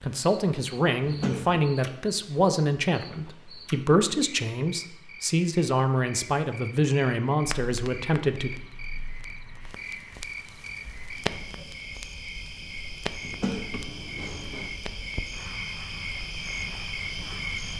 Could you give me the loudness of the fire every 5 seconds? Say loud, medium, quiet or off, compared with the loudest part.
off, medium, loud, medium.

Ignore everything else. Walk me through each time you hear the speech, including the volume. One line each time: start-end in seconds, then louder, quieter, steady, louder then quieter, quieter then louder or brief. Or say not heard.
0.0-8.6 steady.